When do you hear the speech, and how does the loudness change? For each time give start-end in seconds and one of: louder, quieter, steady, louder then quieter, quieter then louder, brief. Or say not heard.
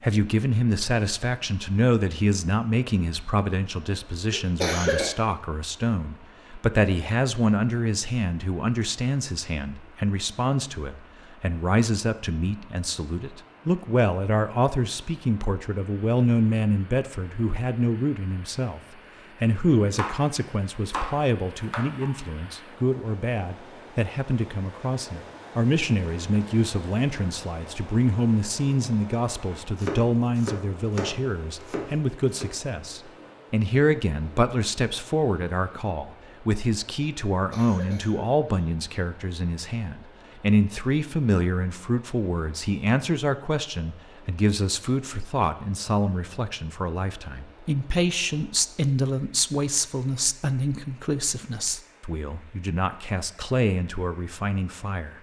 0.0-18.8 steady
19.4-55.1 steady.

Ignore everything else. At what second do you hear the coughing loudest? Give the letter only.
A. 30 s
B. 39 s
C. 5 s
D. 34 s
C.